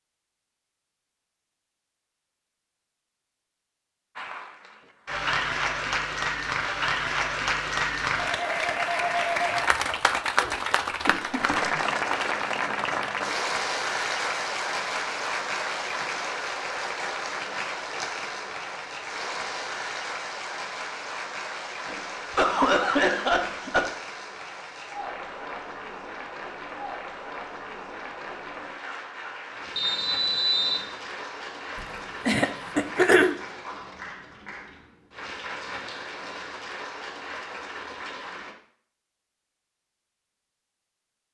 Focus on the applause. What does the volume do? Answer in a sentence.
The volume of the applause goes down.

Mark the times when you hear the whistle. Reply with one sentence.
The whistle can be heard from 29.8 to 30.9 s.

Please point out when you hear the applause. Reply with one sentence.
You can hear the applause from 4.2 to 38.5 s.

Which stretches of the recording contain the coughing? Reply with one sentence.
You can hear the coughing from 10.3 to 11.8 s, from 21.9 to 23.9 s and from 32.2 to 33.4 s.